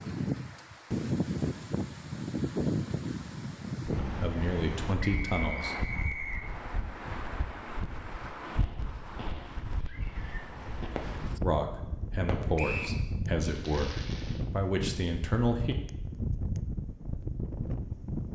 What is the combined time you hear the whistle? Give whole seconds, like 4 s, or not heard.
2 s.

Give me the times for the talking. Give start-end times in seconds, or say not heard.
4.0-5.8, 11.4-15.8.